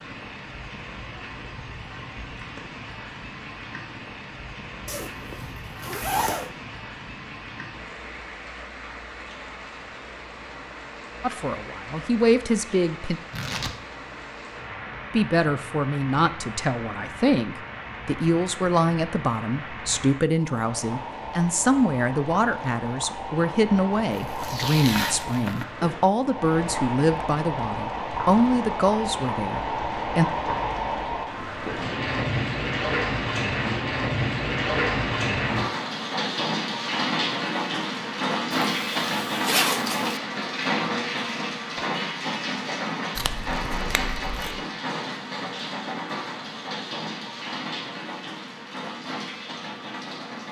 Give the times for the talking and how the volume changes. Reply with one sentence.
The talking can be heard briefly from 11.2 to 13.2 s; and from 15.1 to 30.2 s, at a steady volume.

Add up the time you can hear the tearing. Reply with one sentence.
You can hear the tearing for 4 seconds altogether.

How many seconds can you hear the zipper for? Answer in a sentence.
You can hear the zipper for 3 seconds altogether.